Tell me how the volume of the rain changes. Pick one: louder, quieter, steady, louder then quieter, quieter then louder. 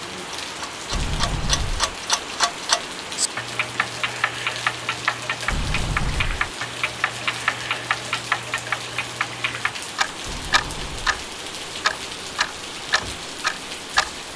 steady.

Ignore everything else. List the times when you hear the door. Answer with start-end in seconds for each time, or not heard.
0.9-1.9, 5.5-6.5, 10.2-11.1.